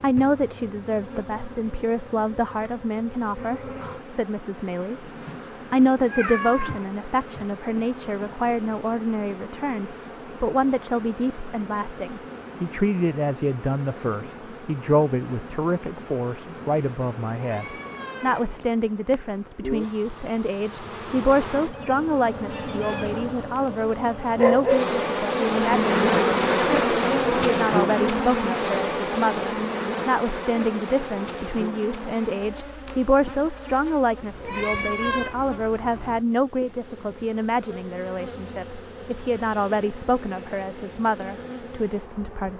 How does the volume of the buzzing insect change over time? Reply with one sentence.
The volume of the buzzing insect goes up, then down.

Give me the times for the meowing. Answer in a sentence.
The meowing can be heard from 6.0 to 7.5 s, from 17.4 to 19.1 s and from 34.2 to 35.4 s.